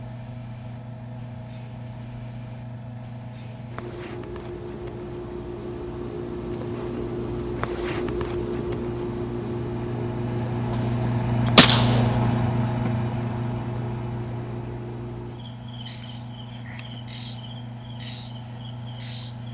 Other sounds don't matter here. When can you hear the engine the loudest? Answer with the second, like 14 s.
12 s.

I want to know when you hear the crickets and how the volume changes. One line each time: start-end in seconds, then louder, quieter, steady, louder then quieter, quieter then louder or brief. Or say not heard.
0.0-19.4 louder then quieter.